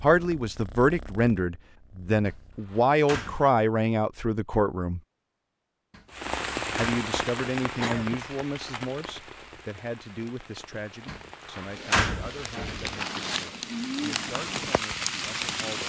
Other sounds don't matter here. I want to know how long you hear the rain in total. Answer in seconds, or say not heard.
10 s.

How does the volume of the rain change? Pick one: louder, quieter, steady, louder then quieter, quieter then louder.
quieter then louder.